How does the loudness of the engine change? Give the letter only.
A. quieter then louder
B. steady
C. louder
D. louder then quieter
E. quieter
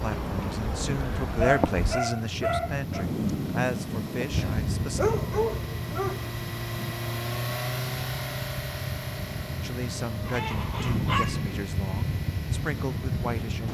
D.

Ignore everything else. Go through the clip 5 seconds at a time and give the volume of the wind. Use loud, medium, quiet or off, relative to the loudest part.
loud, medium, loud.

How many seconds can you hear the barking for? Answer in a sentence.
You can hear the barking for 5 seconds altogether.